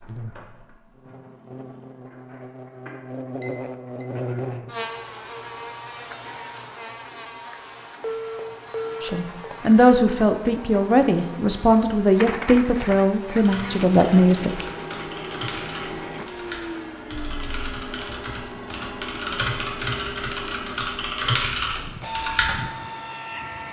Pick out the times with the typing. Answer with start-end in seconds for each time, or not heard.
13.3-22.6.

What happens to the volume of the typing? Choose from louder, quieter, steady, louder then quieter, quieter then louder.
louder.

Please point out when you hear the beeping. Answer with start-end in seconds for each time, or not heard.
3.4-4.0, 8.0-9.6, 18.4-18.8.